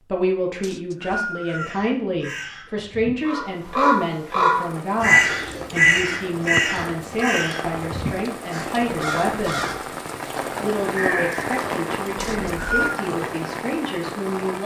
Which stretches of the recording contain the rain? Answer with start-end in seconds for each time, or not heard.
4.5-14.6.